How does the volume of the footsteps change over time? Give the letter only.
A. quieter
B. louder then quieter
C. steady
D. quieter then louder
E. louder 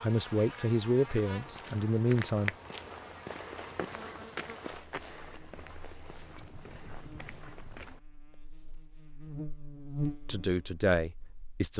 A.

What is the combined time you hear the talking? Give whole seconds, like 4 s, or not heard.
4 s.